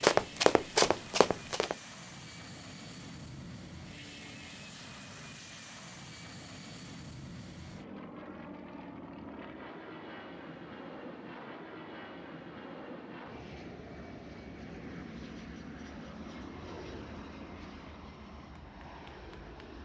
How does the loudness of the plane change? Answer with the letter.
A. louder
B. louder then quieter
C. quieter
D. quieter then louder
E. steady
E.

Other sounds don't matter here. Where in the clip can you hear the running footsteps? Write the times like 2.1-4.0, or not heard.
0.0-1.8.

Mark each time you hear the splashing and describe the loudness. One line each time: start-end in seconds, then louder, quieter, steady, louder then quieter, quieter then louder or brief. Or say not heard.
not heard.